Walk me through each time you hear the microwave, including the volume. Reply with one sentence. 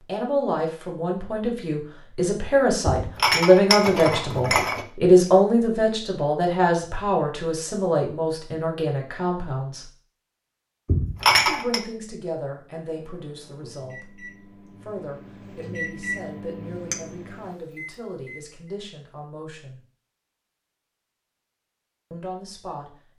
You can hear the microwave from 12.8 to 18.6 s, getting louder then quieter.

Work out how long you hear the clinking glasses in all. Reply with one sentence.
The clinking glasses can be heard for 3 seconds in total.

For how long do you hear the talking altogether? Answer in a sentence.
The talking can be heard for 19 seconds in total.